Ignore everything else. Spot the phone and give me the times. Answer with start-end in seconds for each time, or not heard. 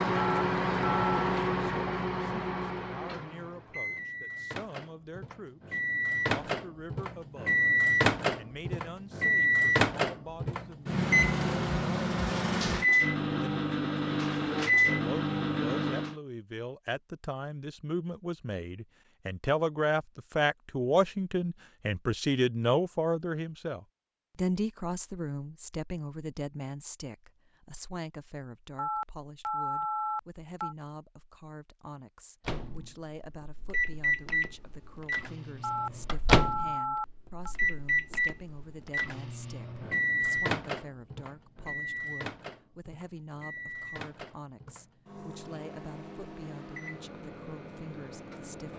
0.1-1.1, 28.8-30.8, 35.6-37.5.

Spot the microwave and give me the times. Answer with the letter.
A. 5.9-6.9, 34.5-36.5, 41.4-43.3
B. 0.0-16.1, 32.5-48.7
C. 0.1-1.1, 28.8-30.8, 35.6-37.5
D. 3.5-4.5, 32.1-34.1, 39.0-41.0
B.